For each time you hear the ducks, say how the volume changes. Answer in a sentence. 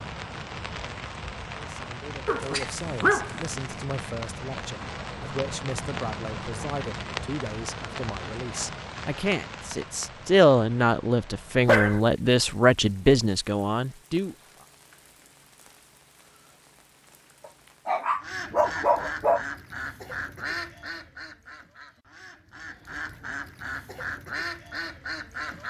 The ducks can be heard from 18.1 to 25.6 s, getting quieter then louder.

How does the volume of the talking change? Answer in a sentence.
The volume of the talking goes up.